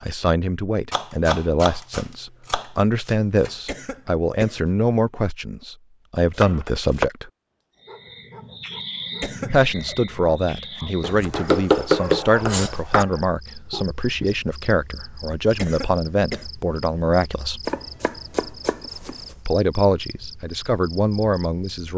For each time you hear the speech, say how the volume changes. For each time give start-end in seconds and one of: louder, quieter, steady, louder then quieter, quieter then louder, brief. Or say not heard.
0.0-7.3 steady
9.5-17.6 steady
19.4-21.9 brief.